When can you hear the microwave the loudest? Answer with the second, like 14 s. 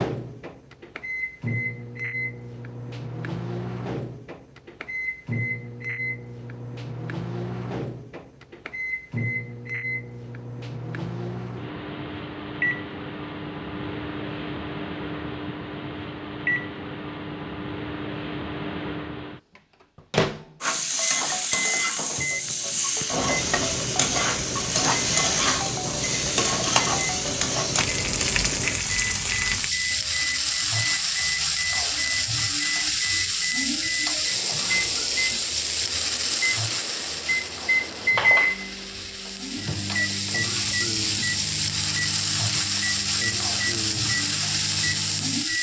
38 s.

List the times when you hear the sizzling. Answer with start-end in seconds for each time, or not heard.
20.6-45.5.